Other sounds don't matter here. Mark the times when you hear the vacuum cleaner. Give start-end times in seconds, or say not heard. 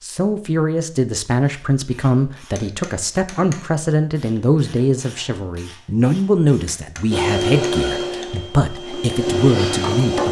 7.1-10.2.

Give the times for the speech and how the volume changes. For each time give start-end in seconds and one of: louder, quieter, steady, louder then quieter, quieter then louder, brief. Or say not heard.
0.0-10.2 steady.